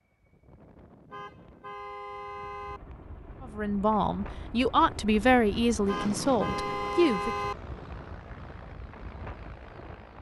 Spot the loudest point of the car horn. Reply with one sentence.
The loudest moment of the car horn is at 7 seconds.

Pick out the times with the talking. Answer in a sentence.
You can hear the talking from 3.4 to 7.3 s.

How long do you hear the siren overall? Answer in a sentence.
You can't hear the siren here.